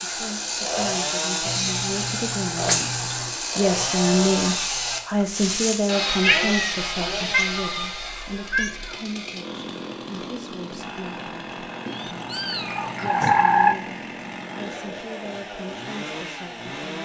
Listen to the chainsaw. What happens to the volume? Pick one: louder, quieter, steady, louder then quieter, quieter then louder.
quieter.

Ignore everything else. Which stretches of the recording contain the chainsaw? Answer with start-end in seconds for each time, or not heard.
0.0-17.0.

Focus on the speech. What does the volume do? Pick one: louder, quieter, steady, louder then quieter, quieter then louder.
louder then quieter.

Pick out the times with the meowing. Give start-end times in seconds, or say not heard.
1.4-3.4, 6.2-8.9, 11.8-13.8.